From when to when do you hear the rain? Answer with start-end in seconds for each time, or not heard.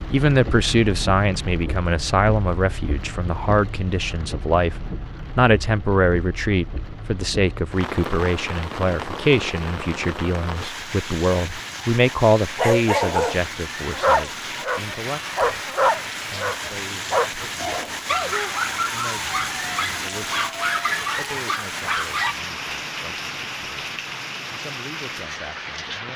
0.0-26.1.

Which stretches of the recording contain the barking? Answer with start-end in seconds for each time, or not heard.
12.6-22.4.